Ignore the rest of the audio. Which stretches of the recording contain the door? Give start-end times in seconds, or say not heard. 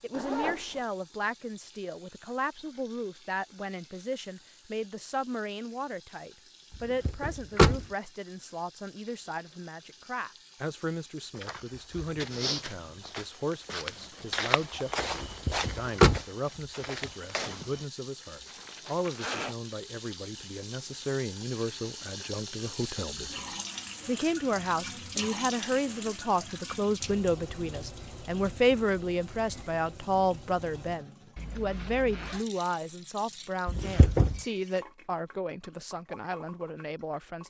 7.0-7.8, 15.4-16.2, 33.6-34.4.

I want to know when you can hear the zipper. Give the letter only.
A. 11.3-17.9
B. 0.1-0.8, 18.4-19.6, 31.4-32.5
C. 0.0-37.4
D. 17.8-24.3
B.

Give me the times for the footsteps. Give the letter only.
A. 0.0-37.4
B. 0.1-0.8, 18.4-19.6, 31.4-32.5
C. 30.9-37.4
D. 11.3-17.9
D.